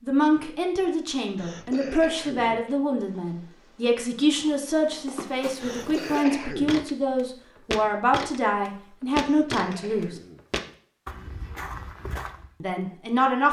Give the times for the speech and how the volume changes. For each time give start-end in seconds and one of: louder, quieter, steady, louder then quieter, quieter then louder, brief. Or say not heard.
0.0-10.2 steady
12.6-13.4 brief.